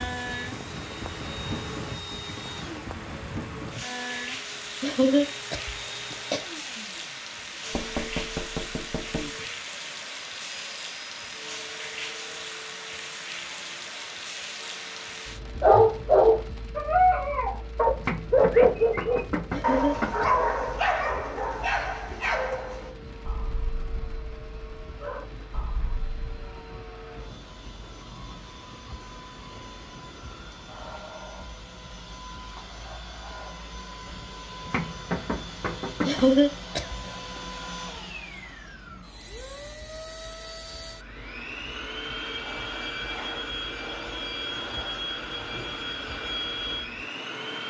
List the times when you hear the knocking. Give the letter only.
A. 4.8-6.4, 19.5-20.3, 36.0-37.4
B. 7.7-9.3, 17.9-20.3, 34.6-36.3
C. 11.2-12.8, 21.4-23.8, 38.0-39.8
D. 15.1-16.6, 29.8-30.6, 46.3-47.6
B.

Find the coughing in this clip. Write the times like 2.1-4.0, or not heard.
4.8-6.4, 19.5-20.3, 36.0-37.4.